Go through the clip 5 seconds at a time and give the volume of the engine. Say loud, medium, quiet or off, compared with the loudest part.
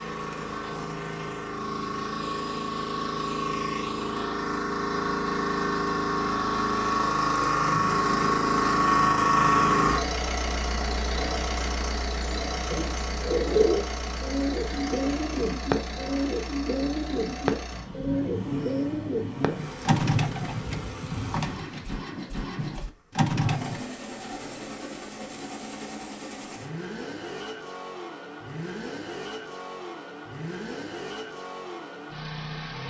medium, loud, medium, quiet, quiet, quiet, quiet.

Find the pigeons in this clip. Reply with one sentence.
The pigeons can be heard from 12.7 to 23.8 s.